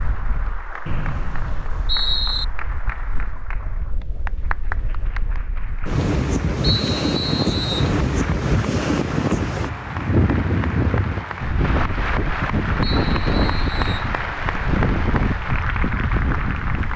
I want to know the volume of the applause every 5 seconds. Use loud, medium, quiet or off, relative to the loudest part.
medium, medium, loud, loud.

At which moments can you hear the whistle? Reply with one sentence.
The whistle can be heard from 0.8 to 2.5 s, from 6.6 to 7.9 s and from 12.8 to 14.1 s.